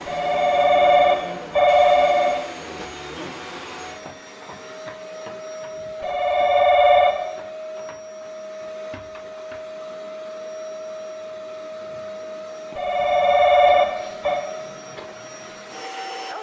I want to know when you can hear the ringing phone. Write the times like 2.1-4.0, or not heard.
0.1-2.5, 6.0-7.2, 12.8-14.4.